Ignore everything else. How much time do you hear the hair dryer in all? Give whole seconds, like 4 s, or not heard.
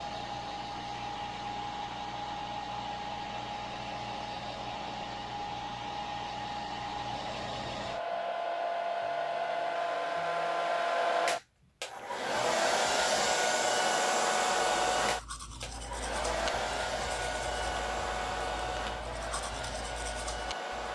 21 s.